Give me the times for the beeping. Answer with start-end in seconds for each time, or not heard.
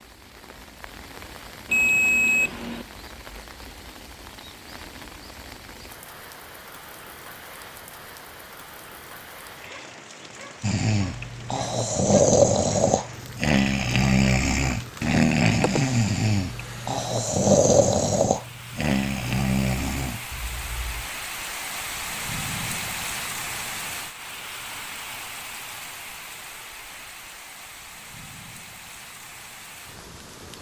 1.6-2.9.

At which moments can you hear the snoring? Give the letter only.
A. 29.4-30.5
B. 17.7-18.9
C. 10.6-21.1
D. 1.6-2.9
C.